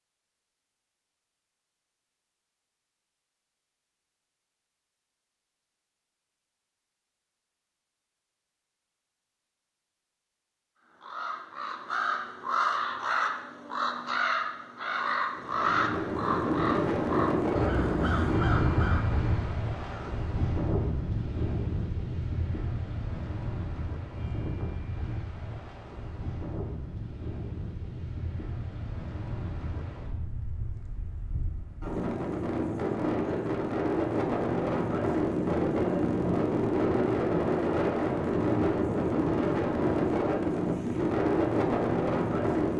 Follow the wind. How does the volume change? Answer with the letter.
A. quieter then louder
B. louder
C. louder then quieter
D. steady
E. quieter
A.